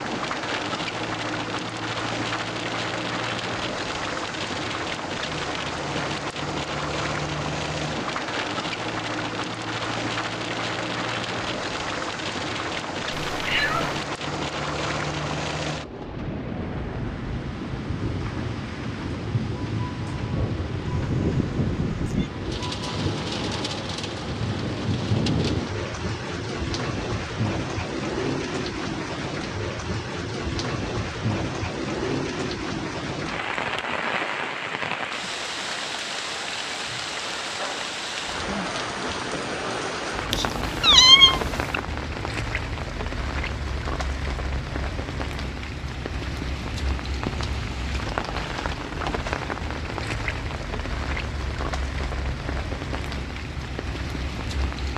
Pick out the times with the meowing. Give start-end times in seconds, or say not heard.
13.3-13.9, 20.9-22.3, 40.3-41.8.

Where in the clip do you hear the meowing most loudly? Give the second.
41 s.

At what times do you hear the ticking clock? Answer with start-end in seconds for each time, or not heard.
not heard.